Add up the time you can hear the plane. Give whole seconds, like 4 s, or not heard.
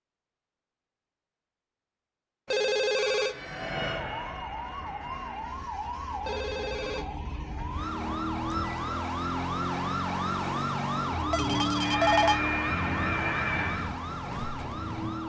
5 s.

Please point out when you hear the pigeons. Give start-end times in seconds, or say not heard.
not heard.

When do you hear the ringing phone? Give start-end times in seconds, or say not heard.
2.5-3.4, 6.2-7.0, 11.3-12.4.